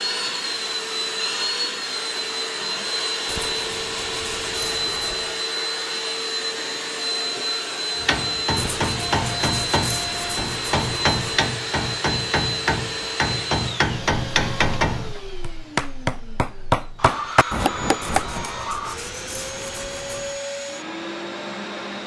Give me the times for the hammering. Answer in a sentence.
The hammering can be heard from 8.0 to 18.5 s.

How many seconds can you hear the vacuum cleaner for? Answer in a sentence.
You can hear the vacuum cleaner for 22 seconds altogether.